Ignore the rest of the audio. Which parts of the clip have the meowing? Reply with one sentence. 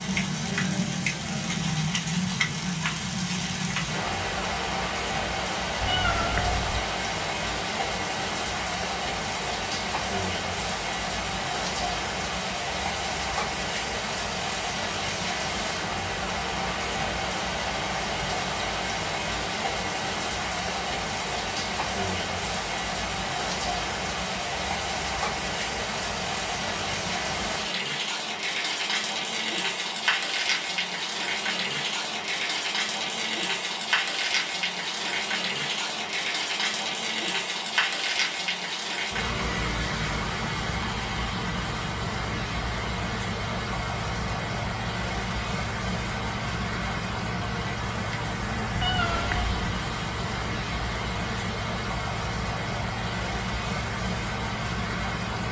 You can hear the meowing from 5.8 to 6.8 s and from 48.8 to 49.8 s.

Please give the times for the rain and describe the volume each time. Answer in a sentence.
You can hear the rain from 0.0 to 55.4 s, at a steady volume.